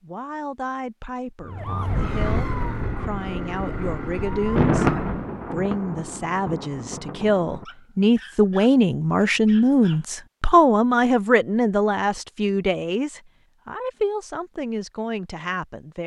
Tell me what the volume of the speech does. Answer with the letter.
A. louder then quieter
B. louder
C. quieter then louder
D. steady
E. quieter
A.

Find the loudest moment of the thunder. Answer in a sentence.
The loudest moment of the thunder is at 5 seconds.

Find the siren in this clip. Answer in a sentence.
The siren can be heard from 1.4 to 5.2 s.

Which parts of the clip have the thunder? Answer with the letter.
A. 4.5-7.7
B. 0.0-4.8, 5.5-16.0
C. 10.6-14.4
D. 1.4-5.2
A.